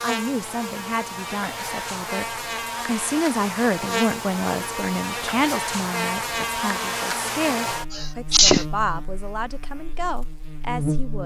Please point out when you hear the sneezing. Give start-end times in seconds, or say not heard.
7.9-8.7.